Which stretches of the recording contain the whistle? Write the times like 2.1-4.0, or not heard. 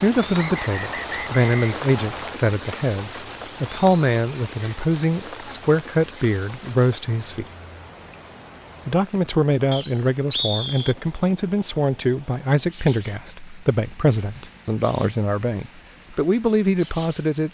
0.3-2.4, 9.7-10.9.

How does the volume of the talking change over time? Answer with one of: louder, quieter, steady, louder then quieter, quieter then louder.
steady.